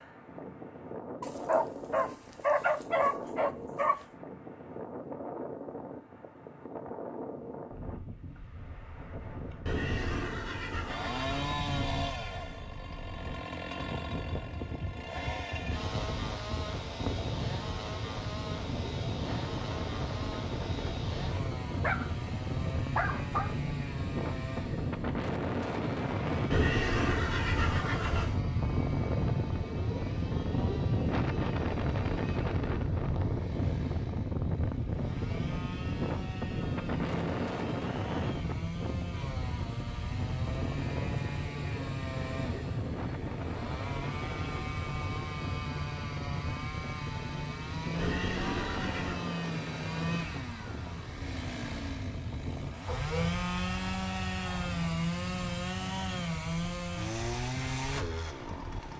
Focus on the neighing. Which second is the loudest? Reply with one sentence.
The volume of the neighing peaks at 27 seconds.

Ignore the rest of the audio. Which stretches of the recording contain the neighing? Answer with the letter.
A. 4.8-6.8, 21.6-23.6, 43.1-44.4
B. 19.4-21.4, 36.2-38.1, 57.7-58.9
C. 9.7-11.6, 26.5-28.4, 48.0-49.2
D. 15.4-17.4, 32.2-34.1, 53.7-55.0
C.